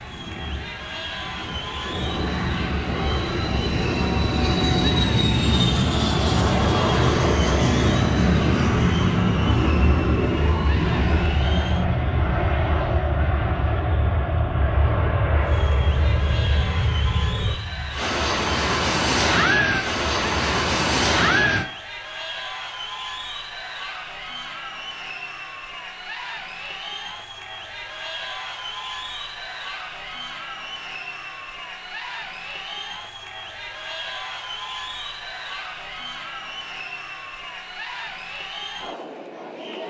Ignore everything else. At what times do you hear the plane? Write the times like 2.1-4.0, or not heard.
0.0-21.6.